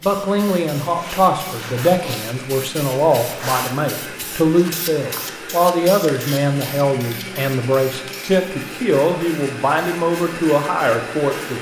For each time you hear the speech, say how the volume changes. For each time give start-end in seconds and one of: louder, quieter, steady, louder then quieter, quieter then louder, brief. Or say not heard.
0.0-11.5 steady.